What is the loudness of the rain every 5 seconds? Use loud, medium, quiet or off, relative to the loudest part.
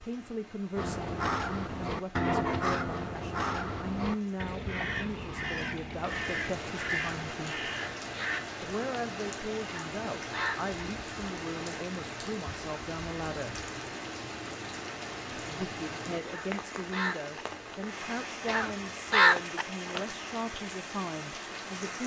quiet, loud, loud, loud, loud.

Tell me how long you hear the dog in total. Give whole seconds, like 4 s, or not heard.
not heard.